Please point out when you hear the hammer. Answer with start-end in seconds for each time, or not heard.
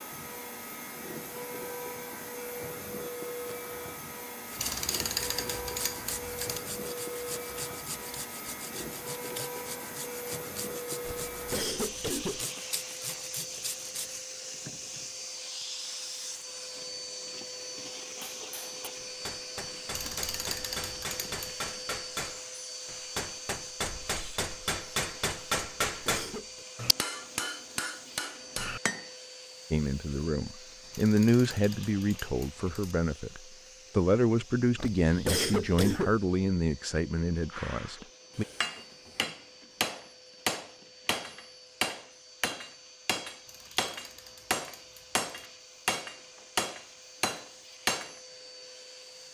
18.2-29.1, 37.5-48.1.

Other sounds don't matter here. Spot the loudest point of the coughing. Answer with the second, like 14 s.
35 s.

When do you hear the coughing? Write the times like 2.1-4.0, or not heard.
11.0-12.4, 25.6-26.6, 34.8-36.2.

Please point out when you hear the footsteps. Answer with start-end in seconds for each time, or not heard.
not heard.